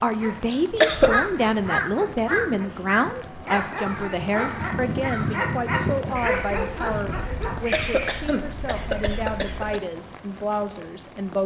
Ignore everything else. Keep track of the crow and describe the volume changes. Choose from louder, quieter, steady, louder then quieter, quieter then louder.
quieter.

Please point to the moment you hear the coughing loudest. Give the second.
1 s.